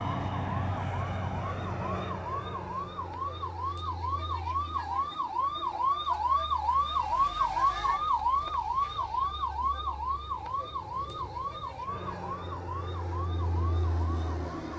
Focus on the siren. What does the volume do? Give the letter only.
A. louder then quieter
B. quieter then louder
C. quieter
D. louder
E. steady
A.